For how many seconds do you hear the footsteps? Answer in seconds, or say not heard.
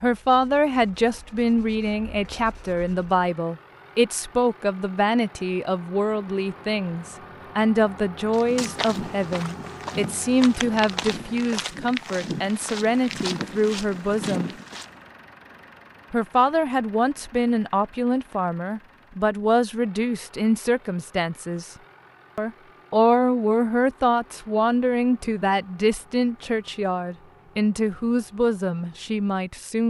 7 s.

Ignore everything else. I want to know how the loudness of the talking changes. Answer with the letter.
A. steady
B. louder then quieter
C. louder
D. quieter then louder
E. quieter
A.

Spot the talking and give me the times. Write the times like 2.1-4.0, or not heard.
0.0-14.5, 16.1-21.7, 22.4-29.8.